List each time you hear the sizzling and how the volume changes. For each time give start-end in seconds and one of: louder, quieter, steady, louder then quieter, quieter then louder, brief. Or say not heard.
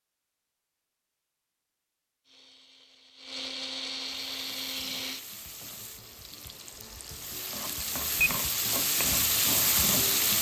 4.0-10.3 louder.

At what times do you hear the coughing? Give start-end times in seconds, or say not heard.
not heard.